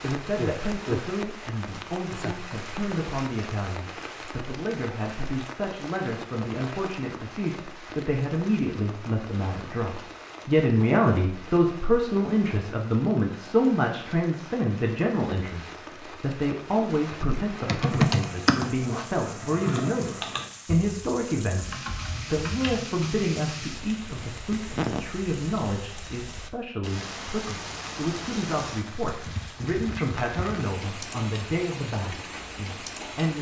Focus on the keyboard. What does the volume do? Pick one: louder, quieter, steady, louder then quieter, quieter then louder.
quieter.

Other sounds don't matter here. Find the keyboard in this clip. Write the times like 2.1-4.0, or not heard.
17.6-22.8.